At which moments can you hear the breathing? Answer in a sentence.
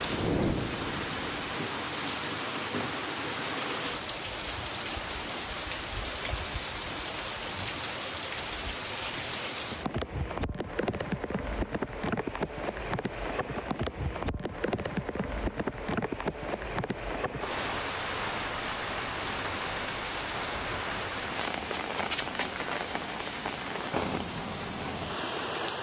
You can hear the breathing from 0.0 to 1.6 s.